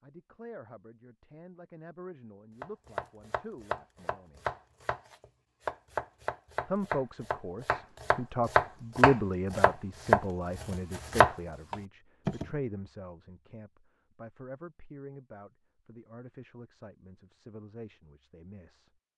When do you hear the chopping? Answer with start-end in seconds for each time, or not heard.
2.6-12.4.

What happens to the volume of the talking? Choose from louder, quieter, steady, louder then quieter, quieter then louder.
louder then quieter.